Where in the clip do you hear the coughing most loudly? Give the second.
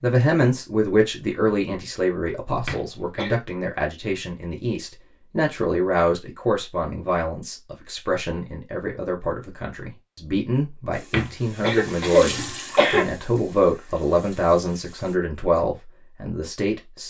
12 s.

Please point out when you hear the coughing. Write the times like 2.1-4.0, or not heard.
2.6-3.4, 11.1-13.1.